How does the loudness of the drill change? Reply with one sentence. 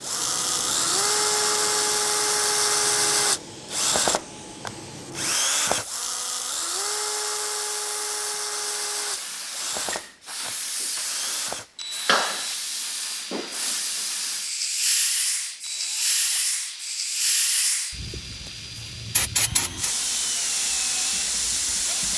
The loudness of the drill goes down.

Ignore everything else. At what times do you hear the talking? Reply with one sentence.
The talking can't be heard in this clip.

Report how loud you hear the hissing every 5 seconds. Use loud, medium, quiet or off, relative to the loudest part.
quiet, medium, loud, loud, loud.